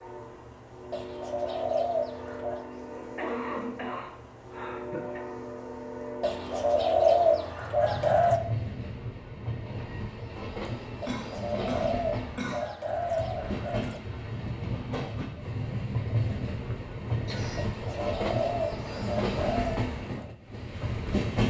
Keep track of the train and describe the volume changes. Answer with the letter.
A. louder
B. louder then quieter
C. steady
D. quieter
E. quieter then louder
A.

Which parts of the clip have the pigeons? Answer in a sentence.
The pigeons can be heard from 0.9 to 2.6 s, from 6.2 to 8.4 s, from 11.0 to 14.0 s and from 17.6 to 19.8 s.